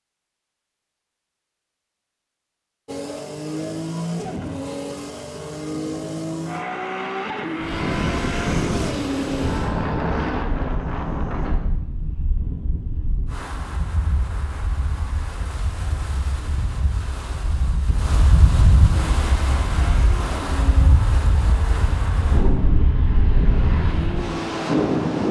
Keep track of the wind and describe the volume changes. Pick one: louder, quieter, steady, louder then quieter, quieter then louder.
quieter then louder.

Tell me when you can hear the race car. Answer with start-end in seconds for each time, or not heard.
2.9-10.4, 19.1-25.2.